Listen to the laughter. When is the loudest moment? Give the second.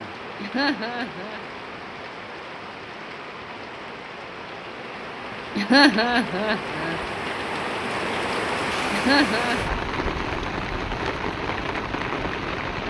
6 s.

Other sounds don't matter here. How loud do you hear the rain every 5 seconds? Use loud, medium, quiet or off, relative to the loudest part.
medium, loud, loud.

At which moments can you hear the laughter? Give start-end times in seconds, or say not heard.
0.3-1.4, 5.5-7.0, 8.9-9.6.